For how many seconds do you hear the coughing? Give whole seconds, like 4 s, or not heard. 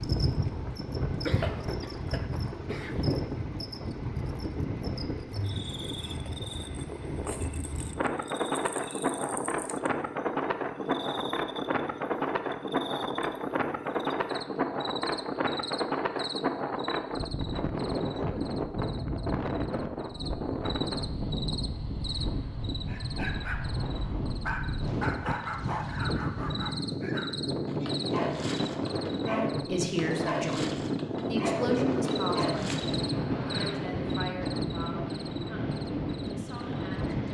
2 s.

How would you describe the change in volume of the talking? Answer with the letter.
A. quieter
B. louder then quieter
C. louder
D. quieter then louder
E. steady
A.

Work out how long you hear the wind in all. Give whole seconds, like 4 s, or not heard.
37 s.